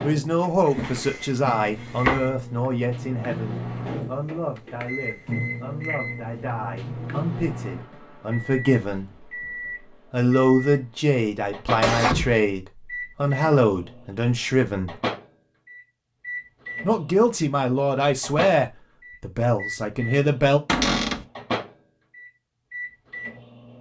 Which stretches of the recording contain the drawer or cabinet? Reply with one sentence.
You can hear the drawer or cabinet from 0.7 to 2.3 s, from 11.8 to 12.4 s and from 20.6 to 21.2 s.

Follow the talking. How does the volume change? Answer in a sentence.
The volume of the talking goes down, then up.